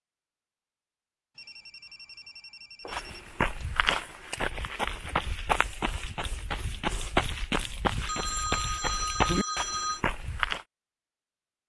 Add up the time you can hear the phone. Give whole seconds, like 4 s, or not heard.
4 s.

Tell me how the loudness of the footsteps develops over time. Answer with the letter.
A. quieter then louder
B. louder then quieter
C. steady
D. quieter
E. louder
C.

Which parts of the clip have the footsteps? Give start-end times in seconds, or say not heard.
2.9-10.7.